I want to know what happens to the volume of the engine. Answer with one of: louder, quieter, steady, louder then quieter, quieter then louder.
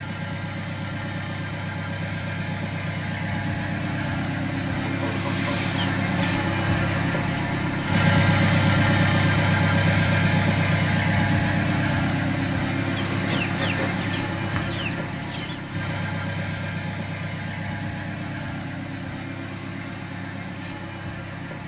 louder then quieter.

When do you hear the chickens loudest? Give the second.
13 s.